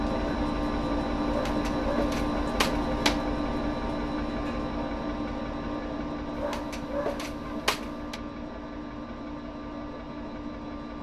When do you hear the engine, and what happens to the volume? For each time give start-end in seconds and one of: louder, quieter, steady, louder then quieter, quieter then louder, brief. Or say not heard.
0.0-10.9 quieter.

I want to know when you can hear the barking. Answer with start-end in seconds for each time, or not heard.
1.2-3.2, 6.3-8.2.